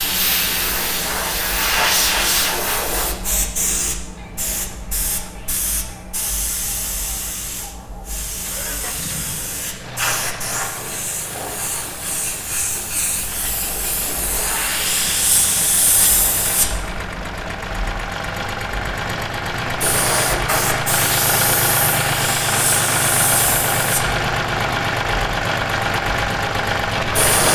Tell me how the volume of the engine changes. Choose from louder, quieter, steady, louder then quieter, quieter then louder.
louder.